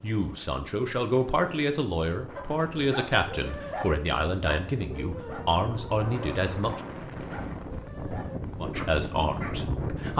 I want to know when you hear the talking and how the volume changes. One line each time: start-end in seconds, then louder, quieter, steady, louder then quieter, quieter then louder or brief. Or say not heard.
0.0-6.8 steady
8.6-10.1 brief.